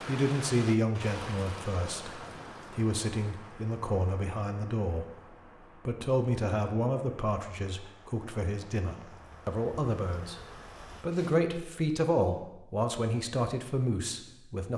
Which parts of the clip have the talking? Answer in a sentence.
You can hear the talking from 0.0 to 14.7 s.